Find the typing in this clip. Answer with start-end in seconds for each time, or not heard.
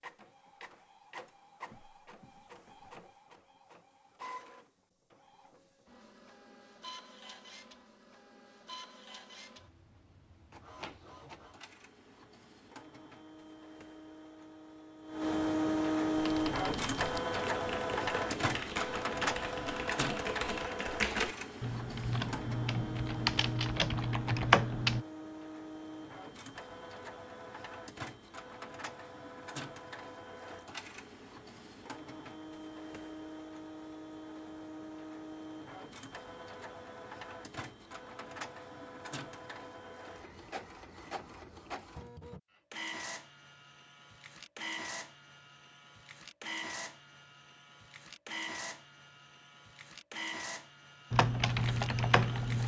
16.1-25.1, 51.1-52.6.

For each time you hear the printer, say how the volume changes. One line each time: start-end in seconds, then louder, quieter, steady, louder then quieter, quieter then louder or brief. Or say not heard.
0.0-52.6 louder then quieter.